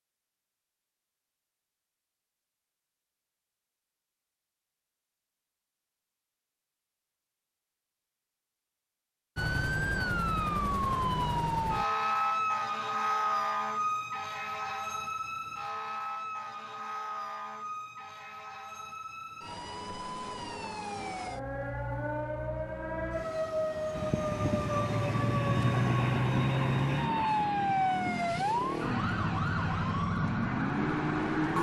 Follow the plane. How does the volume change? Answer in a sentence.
The loudness of the plane goes down.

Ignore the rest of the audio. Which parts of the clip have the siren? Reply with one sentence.
You can hear the siren from 9.3 to 31.5 s.